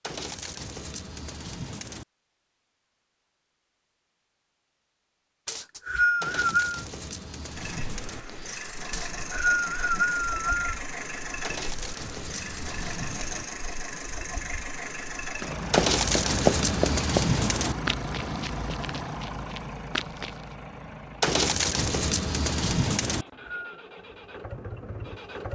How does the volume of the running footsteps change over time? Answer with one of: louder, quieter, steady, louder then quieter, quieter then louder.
quieter then louder.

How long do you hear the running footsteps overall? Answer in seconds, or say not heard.
5 s.